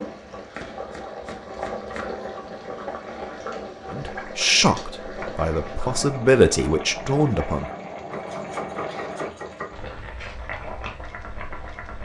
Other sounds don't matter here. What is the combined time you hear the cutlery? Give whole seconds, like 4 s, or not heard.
not heard.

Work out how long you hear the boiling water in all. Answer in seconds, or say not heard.
12 s.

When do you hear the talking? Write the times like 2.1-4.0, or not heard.
3.9-7.7.